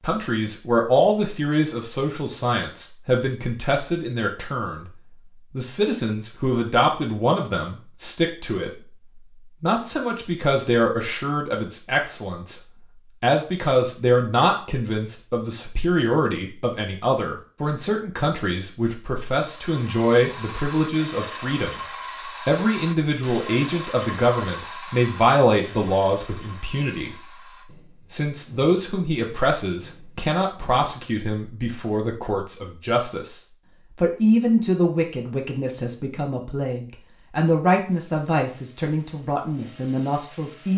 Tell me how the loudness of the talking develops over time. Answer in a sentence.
The loudness of the talking stays about the same.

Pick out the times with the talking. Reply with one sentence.
The talking can be heard from 0.0 to 27.2 s and from 28.1 to 40.7 s.